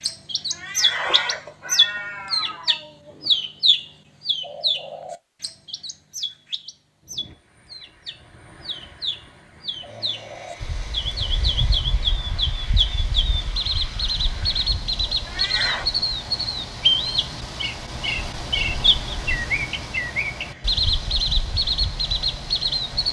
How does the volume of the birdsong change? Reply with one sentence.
The volume of the birdsong goes down, then up.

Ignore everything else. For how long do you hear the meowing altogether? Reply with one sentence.
You can hear the meowing for 3 seconds altogether.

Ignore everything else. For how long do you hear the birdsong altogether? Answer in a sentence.
The birdsong can be heard for 23 seconds in total.